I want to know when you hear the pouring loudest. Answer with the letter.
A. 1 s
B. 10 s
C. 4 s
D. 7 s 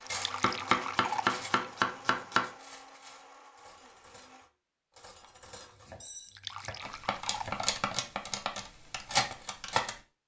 A.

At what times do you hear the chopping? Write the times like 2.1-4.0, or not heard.
0.4-2.5, 5.7-7.7.